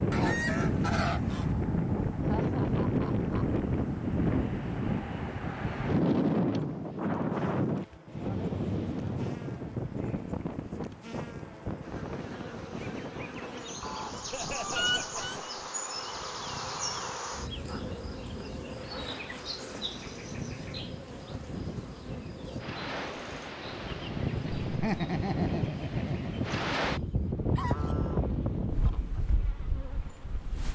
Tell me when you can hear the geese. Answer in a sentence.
You can hear the geese from 0.1 to 1.6 s, from 13.8 to 15.4 s and from 27.6 to 29.2 s.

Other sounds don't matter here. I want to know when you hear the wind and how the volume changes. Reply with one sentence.
You can hear the wind from 0.0 to 30.7 s, getting quieter then louder.